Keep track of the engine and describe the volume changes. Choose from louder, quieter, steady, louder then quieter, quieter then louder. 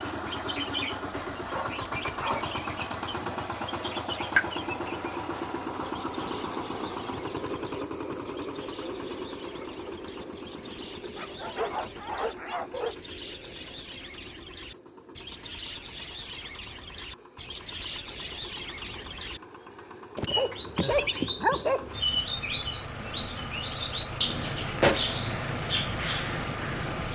quieter then louder.